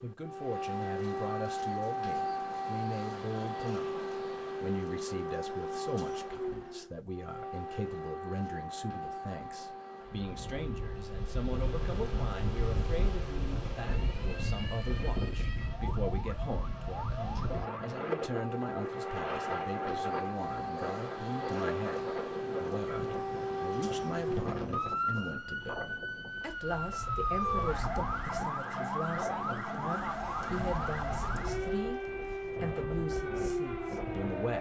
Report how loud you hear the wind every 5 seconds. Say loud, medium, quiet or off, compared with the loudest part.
off, off, loud, loud, loud, medium, medium.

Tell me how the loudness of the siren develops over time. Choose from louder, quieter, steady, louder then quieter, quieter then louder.
quieter then louder.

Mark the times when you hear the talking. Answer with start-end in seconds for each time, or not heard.
0.0-4.0, 4.6-34.5.